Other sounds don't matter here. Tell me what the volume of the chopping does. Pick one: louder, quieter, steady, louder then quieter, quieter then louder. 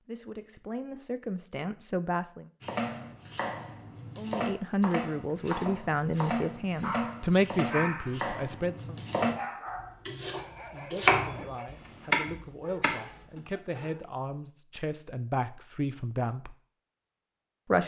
louder.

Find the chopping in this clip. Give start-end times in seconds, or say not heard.
2.6-13.4.